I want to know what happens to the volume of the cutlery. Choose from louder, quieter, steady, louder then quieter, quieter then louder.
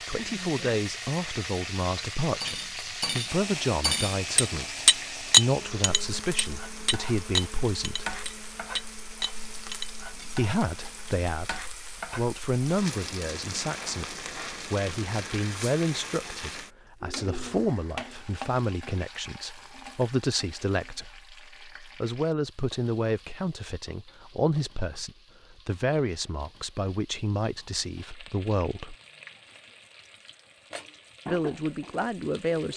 louder then quieter.